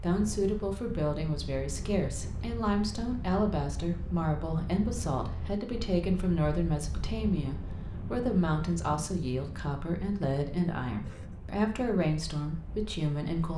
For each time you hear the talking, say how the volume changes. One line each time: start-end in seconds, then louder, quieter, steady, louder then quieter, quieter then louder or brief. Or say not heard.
0.0-13.5 steady.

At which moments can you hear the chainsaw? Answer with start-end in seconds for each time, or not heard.
not heard.